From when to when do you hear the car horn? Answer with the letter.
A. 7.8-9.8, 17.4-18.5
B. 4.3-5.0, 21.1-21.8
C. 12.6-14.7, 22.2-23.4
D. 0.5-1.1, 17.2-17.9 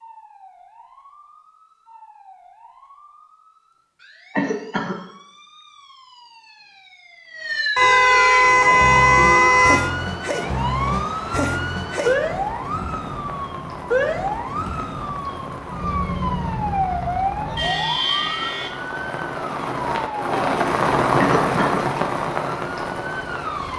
A.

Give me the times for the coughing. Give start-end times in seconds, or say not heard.
4.3-5.0, 21.1-21.8.